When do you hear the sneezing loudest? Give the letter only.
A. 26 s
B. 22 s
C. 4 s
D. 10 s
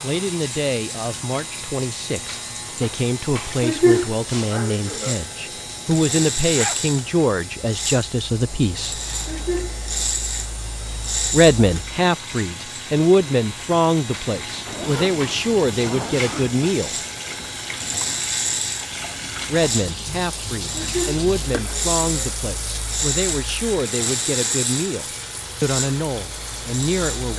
C.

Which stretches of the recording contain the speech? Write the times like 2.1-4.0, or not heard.
0.0-9.0, 11.3-17.0, 19.4-27.3.